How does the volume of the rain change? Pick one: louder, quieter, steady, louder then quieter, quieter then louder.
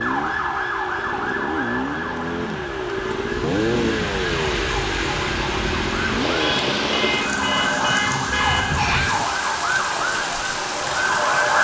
louder.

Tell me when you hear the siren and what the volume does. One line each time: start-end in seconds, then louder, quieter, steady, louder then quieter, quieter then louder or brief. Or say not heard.
0.0-11.5 quieter then louder.